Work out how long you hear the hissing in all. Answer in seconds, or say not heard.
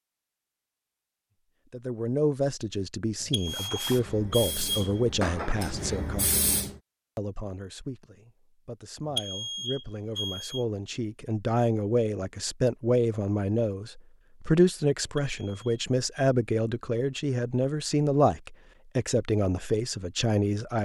3 s.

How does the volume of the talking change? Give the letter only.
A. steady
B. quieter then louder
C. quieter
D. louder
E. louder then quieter
B.